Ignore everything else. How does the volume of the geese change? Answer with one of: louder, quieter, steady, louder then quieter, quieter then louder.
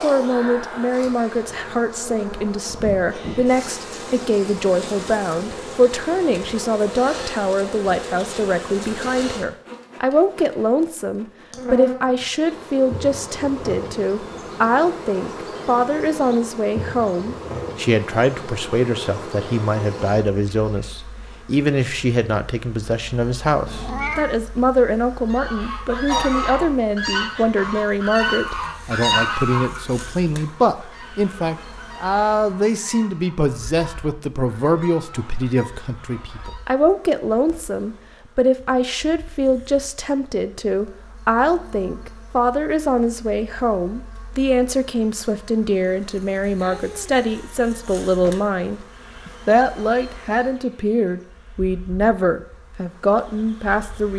quieter.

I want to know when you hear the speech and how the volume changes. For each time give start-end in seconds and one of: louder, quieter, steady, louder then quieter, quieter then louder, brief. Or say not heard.
0.0-54.1 steady.